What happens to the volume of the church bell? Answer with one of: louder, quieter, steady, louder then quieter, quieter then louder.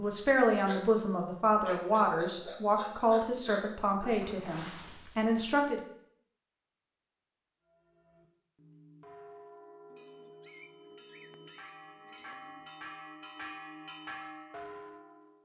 louder.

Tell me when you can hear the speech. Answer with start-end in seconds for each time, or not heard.
0.0-5.8.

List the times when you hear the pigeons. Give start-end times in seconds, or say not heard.
9.9-12.8.